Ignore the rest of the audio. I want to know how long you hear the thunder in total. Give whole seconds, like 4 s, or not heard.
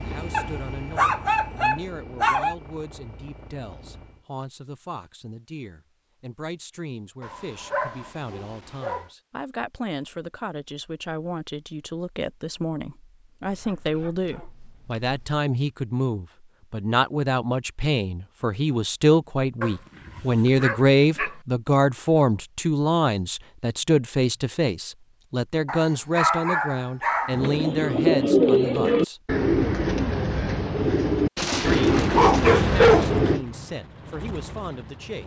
2 s.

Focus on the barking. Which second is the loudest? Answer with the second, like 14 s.
33 s.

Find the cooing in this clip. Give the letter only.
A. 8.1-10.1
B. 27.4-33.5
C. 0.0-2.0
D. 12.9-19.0
B.